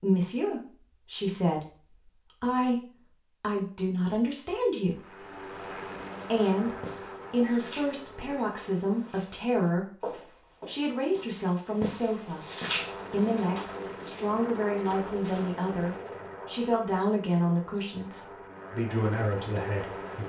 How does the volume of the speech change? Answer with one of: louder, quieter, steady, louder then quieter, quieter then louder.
steady.